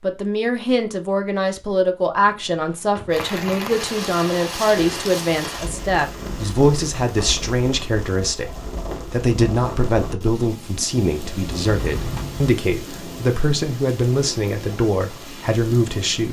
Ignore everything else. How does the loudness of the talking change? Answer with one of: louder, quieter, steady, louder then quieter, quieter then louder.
steady.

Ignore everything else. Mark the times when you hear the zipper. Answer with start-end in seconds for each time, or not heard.
not heard.